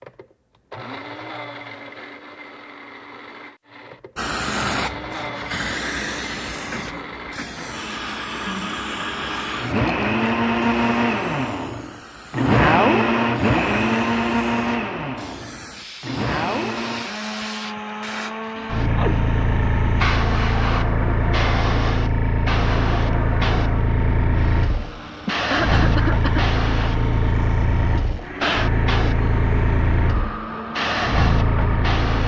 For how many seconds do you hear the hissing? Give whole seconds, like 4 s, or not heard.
28 s.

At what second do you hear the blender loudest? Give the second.
13 s.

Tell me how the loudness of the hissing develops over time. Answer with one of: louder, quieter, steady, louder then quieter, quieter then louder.
quieter then louder.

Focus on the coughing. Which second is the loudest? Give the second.
26 s.